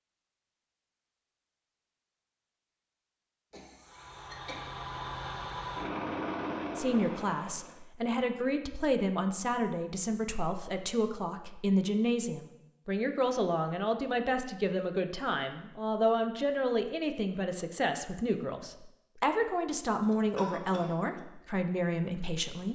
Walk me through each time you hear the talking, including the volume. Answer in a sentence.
The talking can be heard from 6.8 to 22.7 s, at a steady volume.